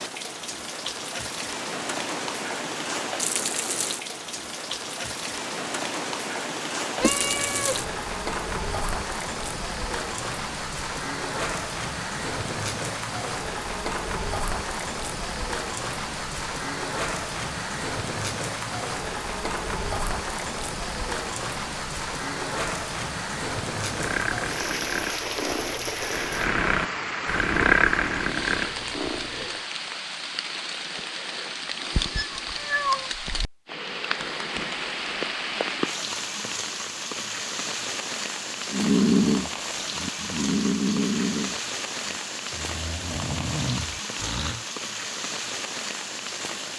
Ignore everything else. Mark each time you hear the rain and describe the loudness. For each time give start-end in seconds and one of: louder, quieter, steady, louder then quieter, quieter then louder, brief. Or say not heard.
0.0-46.7 steady.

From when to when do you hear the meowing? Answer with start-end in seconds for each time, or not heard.
7.0-7.8, 32.1-33.1.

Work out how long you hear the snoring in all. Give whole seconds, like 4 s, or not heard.
12 s.